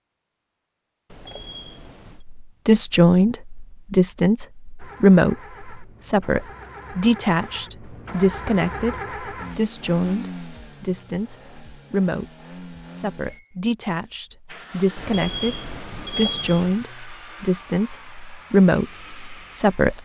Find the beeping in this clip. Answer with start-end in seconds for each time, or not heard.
1.1-2.2, 14.9-16.8.